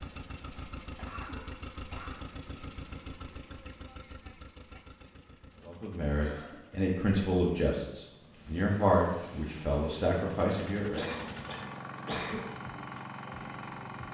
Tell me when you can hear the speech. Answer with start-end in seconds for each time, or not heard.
5.7-11.1.